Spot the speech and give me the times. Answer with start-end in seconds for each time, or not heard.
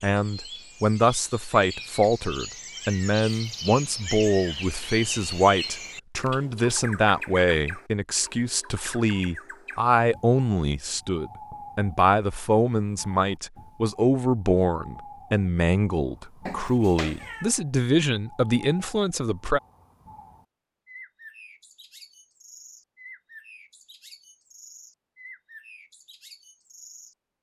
0.0-19.6.